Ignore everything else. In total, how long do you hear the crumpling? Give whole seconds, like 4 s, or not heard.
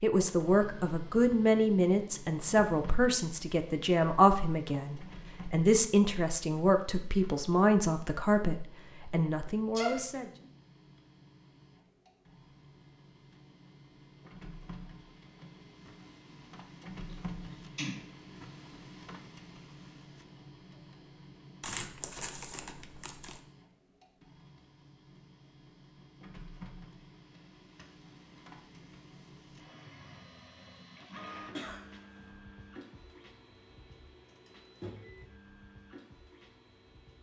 2 s.